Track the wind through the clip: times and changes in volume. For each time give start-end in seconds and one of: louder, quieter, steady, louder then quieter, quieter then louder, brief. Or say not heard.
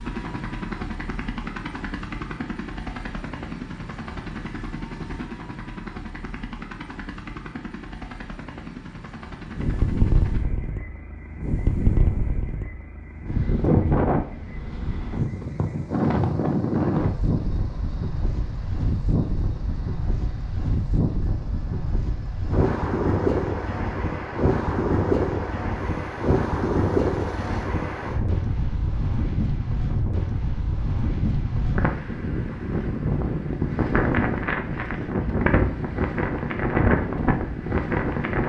9.5-38.4 steady.